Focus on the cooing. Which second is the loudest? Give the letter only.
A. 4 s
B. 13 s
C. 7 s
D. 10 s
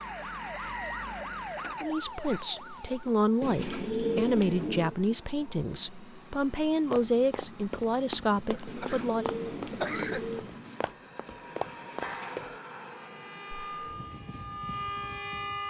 A.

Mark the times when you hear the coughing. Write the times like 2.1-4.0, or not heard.
8.5-10.2.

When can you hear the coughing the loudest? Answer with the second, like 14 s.
10 s.